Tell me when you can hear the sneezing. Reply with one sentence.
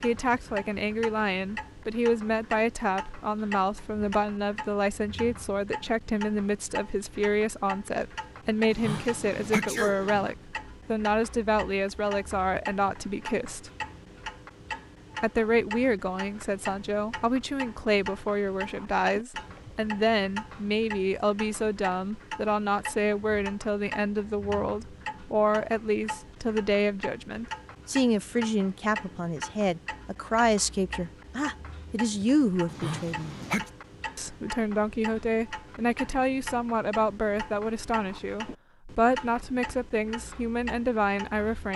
The sneezing can be heard from 8.7 to 10.3 s and from 32.6 to 33.7 s.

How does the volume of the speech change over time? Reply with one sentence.
The loudness of the speech stays about the same.